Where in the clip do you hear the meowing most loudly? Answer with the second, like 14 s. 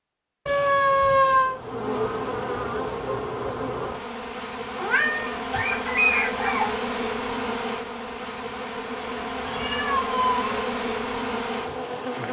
1 s.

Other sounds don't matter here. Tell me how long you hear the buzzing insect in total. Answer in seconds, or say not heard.
11 s.